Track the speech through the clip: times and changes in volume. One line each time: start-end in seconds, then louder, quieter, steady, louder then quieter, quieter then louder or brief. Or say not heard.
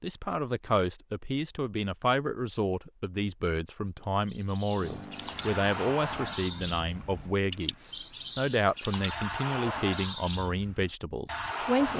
0.0-11.9 steady.